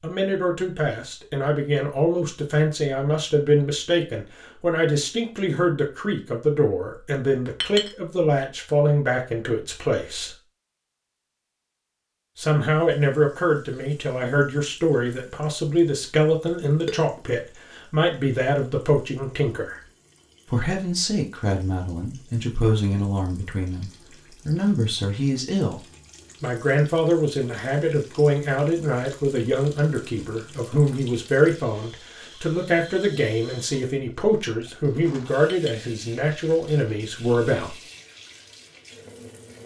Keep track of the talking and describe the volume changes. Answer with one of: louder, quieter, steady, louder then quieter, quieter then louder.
steady.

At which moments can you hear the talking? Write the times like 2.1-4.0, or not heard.
0.0-10.3, 12.3-19.8, 20.5-25.8, 26.4-37.8.